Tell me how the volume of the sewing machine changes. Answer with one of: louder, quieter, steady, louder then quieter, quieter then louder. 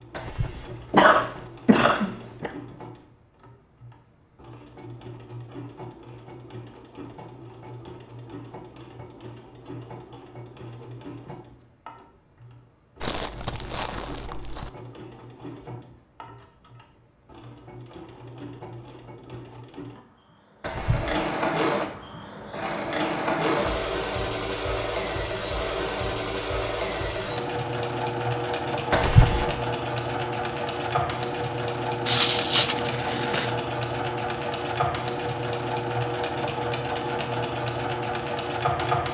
louder.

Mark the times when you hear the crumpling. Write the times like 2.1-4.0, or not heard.
13.0-14.7, 32.0-33.5.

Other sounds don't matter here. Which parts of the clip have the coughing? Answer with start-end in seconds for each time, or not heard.
0.1-2.5, 20.6-21.2, 28.9-29.5.